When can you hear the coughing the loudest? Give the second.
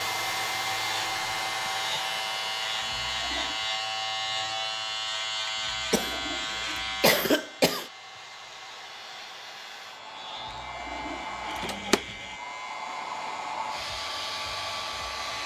7 s.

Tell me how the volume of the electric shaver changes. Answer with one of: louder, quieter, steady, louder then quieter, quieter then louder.
quieter.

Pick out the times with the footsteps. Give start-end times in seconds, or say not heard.
not heard.